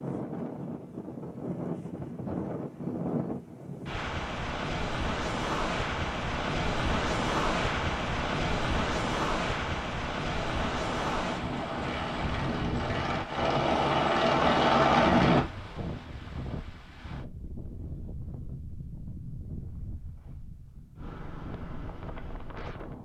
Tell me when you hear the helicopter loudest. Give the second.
15 s.